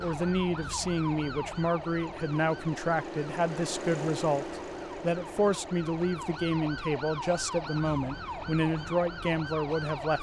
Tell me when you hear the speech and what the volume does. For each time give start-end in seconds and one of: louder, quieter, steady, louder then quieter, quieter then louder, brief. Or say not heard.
0.0-10.1 steady.